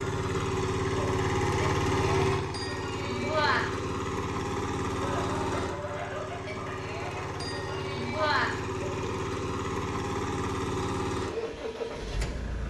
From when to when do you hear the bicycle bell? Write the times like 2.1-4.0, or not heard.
1.6-3.6, 6.5-8.5.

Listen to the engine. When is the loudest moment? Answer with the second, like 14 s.
2 s.